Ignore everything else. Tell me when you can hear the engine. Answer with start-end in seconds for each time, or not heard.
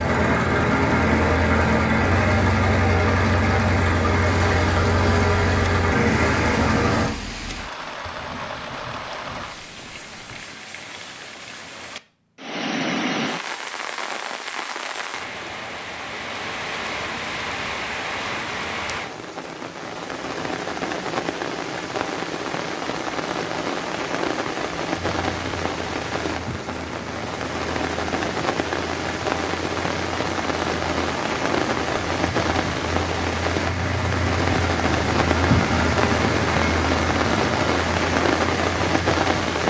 0.0-7.1, 24.9-39.6.